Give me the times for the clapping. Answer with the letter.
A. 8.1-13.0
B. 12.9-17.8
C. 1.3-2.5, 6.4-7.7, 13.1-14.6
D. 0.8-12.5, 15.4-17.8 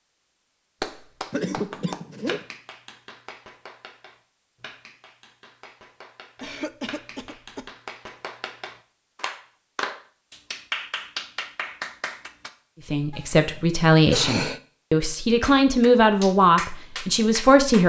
D.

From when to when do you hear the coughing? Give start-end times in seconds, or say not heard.
1.3-2.5, 6.4-7.7, 13.1-14.6.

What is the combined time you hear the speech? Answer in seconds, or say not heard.
5 s.